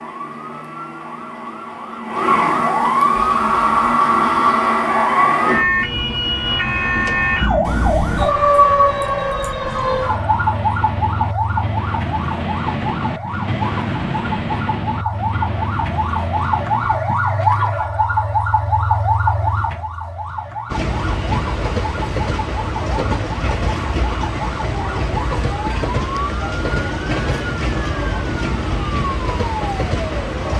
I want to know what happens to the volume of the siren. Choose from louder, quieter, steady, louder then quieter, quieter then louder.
quieter.